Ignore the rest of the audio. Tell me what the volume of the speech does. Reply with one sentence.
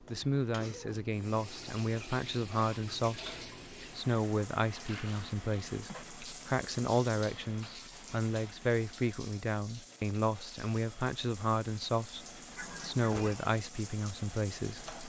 The volume of the speech stays about the same.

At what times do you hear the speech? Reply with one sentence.
The speech can be heard from 0.0 to 14.9 s.